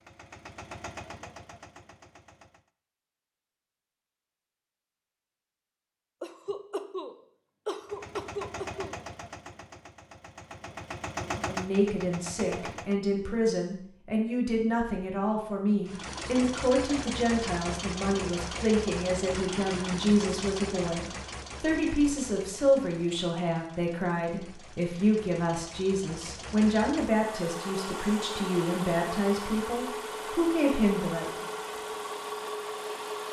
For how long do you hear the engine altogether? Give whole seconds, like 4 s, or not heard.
25 s.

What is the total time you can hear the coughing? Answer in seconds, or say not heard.
3 s.